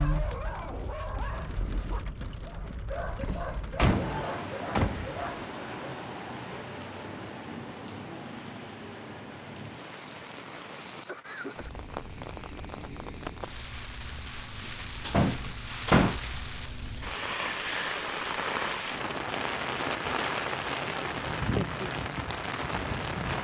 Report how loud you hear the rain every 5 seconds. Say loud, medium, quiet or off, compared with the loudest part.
medium, medium, medium, loud, loud.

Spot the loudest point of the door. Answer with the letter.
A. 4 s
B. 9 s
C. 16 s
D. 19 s
C.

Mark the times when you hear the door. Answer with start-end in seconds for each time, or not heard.
3.2-5.2, 15.1-16.2.